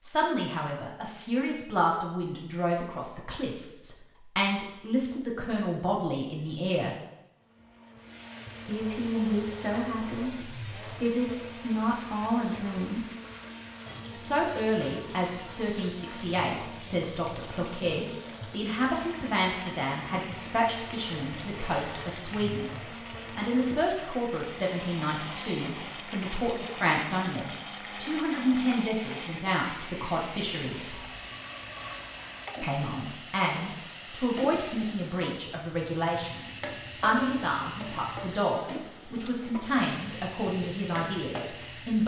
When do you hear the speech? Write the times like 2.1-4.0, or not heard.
0.0-7.0, 8.7-13.0, 14.2-31.1, 32.6-42.0.